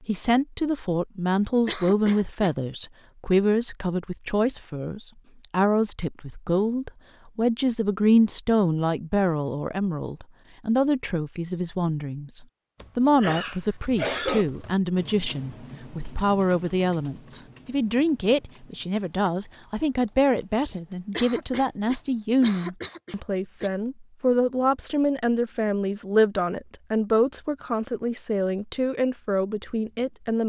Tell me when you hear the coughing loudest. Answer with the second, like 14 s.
14 s.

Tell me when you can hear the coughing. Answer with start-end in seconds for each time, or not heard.
1.6-2.5, 13.2-14.4, 21.1-23.7.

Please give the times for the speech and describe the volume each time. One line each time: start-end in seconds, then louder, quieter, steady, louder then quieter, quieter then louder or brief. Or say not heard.
0.1-30.4 steady.